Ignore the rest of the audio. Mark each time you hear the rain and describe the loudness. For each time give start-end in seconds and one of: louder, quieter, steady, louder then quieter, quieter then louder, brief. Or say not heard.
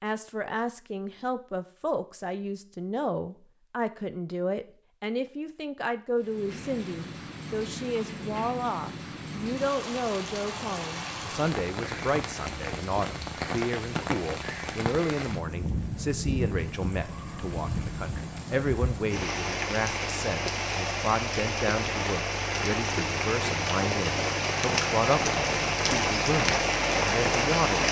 6.2-27.8 louder.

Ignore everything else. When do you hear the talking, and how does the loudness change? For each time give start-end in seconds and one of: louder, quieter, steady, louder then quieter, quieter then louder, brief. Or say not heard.
0.0-27.8 steady.